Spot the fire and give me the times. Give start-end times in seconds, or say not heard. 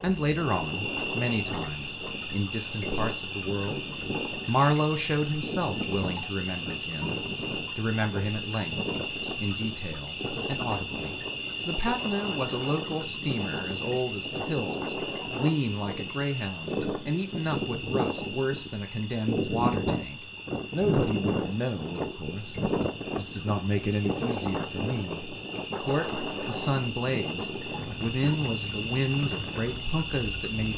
not heard.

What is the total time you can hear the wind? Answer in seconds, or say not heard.
31 s.